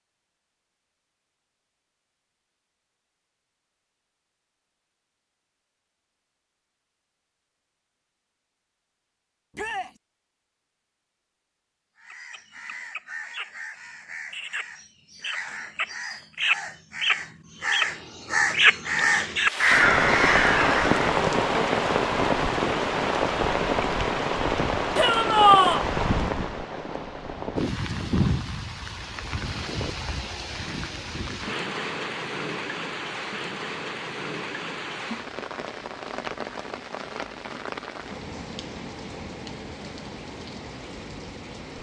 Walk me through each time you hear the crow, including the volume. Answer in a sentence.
You can hear the crow from 12.0 to 21.1 s, getting louder.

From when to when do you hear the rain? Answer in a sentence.
You can hear the rain from 19.4 to 41.7 s.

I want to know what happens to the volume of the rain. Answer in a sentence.
The volume of the rain goes down.